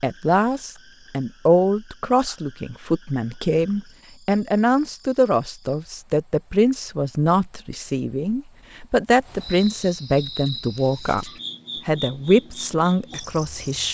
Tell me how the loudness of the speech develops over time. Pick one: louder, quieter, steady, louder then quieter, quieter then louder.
steady.